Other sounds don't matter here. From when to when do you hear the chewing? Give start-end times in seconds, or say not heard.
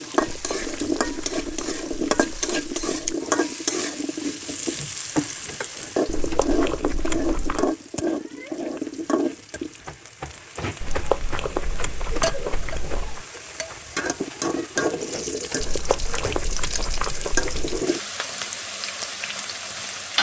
0.2-3.1, 6.0-7.8, 10.8-13.2, 15.6-17.9.